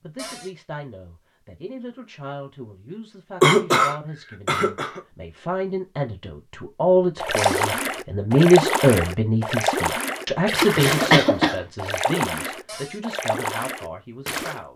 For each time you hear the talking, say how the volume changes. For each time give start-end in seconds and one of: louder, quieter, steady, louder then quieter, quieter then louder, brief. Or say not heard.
0.0-14.7 louder then quieter.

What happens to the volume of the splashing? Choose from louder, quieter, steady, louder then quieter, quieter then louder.
quieter.